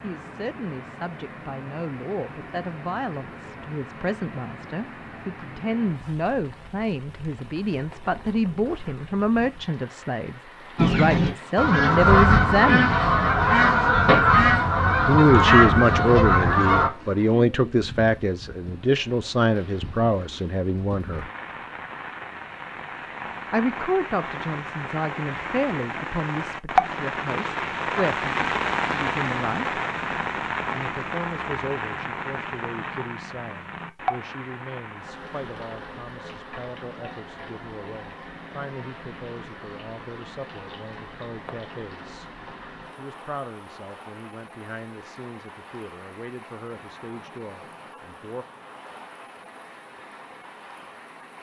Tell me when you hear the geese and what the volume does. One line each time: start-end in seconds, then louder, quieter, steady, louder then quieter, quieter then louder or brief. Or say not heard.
10.8-16.9 steady.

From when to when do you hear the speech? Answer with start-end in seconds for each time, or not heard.
0.0-12.9, 15.1-21.3, 23.5-29.8, 30.7-42.3, 43.0-48.5.